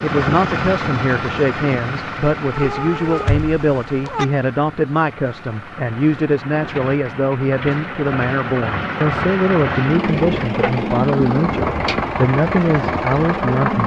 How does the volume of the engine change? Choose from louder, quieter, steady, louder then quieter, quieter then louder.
quieter then louder.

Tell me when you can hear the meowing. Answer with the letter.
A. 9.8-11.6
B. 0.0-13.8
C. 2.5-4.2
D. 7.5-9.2
C.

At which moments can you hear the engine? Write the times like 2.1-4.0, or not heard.
0.0-13.8.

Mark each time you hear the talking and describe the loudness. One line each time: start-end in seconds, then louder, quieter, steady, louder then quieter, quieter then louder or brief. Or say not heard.
0.0-13.8 steady.